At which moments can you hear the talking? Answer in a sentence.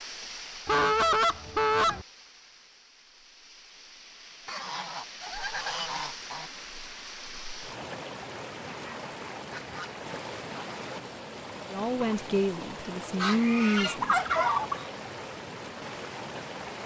The talking can be heard from 11.7 to 14.2 s.